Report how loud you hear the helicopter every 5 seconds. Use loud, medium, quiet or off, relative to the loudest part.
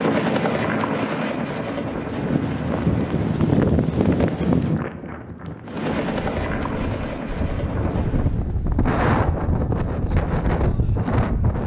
loud, loud, off.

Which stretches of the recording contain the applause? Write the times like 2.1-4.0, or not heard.
not heard.